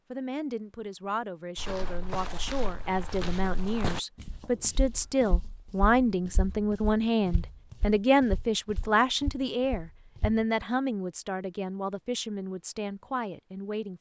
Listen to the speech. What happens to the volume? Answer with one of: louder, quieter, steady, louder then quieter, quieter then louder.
louder then quieter.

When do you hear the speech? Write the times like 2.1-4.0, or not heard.
0.1-13.9.